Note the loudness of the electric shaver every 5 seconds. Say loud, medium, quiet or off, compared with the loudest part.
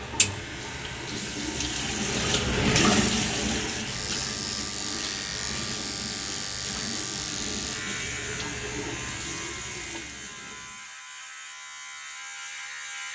loud, loud, medium.